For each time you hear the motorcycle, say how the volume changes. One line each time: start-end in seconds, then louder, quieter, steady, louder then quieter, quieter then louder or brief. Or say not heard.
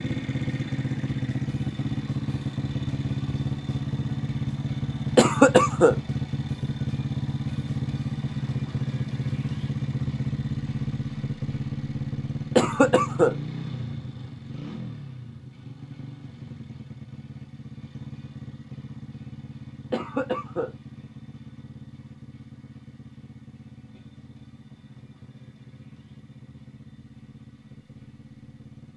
0.0-28.9 quieter.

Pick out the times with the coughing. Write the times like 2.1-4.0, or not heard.
5.2-6.0, 12.6-13.3, 19.9-20.7.